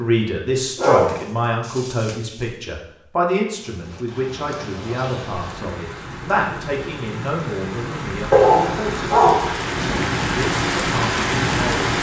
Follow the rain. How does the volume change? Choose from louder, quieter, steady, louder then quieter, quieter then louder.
louder.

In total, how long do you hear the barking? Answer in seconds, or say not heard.
3 s.